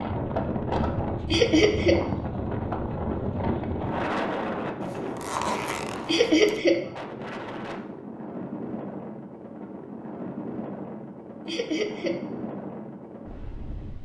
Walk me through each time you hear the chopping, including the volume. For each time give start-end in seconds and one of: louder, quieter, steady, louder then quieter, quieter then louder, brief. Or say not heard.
not heard.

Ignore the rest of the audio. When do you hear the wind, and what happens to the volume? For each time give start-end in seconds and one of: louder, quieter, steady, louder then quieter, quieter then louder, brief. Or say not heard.
0.0-13.9 quieter.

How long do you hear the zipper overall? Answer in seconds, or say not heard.
2 s.